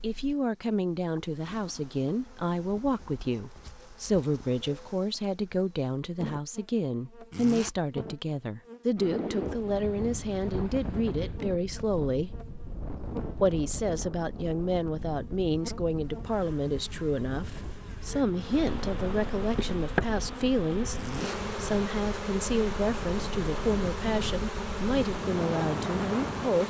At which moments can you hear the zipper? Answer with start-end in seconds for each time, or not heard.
7.3-7.8, 20.9-21.4.